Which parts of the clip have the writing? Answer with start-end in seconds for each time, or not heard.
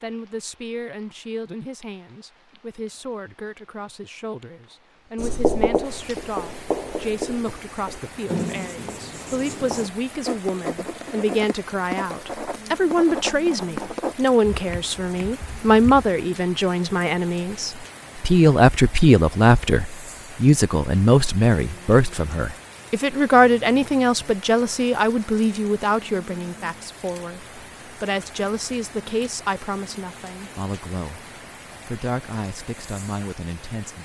5.2-16.1.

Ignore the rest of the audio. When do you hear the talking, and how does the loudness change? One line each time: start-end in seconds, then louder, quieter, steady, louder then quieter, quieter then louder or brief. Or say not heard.
0.0-31.2 louder then quieter
31.9-34.0 brief.